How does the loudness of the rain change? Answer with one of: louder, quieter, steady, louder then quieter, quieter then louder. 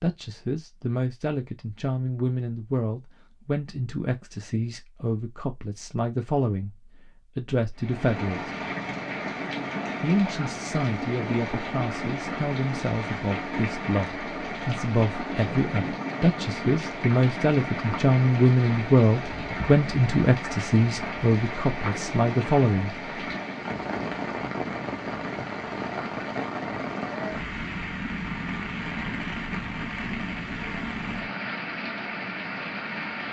steady.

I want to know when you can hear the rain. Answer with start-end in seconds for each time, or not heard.
7.8-33.2.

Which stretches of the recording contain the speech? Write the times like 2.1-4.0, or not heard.
0.0-6.8, 7.3-8.5, 10.0-22.9.